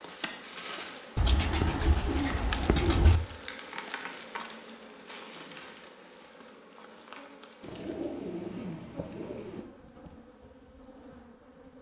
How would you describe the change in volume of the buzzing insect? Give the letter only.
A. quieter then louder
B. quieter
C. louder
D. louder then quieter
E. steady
B.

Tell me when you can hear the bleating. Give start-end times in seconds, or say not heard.
not heard.